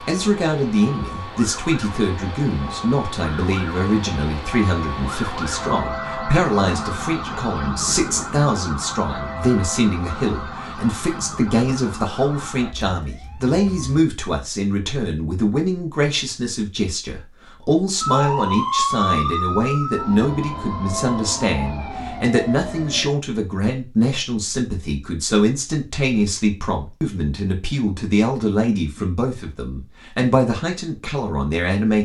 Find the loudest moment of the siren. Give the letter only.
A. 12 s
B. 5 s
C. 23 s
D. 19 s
D.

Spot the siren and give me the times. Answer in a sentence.
The siren can be heard from 0.0 to 14.0 s and from 18.0 to 23.1 s.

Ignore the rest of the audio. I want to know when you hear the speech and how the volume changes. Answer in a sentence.
The speech can be heard from 0.1 to 32.0 s, at a steady volume.